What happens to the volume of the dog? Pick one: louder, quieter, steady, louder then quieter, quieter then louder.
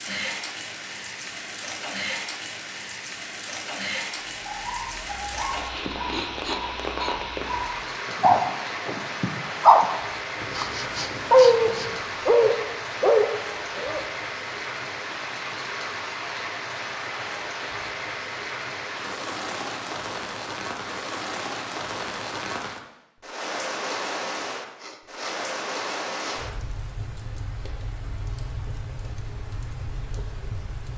louder.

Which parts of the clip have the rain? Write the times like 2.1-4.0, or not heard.
0.0-30.9.